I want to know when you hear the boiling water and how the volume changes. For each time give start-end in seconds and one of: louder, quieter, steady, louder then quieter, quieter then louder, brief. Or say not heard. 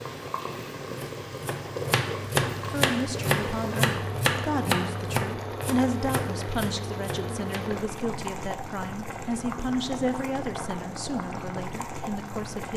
0.0-12.7 steady.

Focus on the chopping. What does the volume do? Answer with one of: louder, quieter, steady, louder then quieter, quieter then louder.
quieter.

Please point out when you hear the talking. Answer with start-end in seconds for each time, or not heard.
2.7-12.7.